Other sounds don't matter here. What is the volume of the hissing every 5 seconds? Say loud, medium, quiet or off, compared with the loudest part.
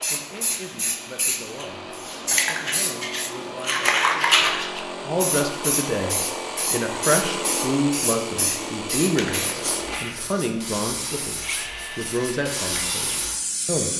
loud, medium, medium.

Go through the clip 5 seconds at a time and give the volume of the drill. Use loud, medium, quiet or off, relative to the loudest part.
medium, loud, medium.